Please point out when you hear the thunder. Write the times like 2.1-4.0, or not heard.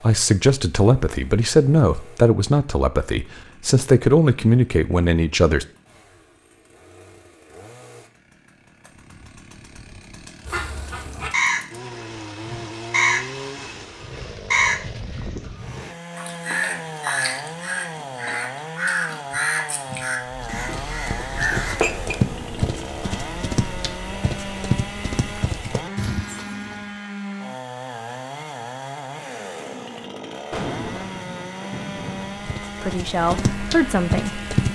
30.5-32.5.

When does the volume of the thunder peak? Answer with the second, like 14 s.
31 s.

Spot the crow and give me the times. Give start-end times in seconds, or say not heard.
10.4-11.7, 12.4-13.2, 14.0-21.8.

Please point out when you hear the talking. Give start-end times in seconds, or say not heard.
0.0-5.7, 32.8-34.4.